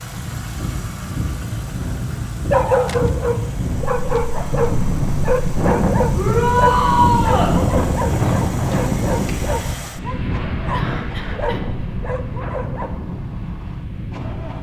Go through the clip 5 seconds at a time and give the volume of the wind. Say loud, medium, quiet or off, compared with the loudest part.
medium, loud, medium.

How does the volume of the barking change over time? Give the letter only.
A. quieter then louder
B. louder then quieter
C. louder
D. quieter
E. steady
D.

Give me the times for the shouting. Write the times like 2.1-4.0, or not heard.
6.2-7.5.